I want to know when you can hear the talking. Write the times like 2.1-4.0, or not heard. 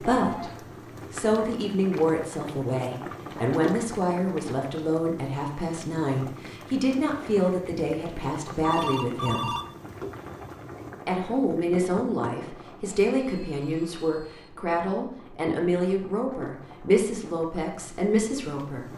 0.0-0.5, 1.1-9.6, 11.1-18.9.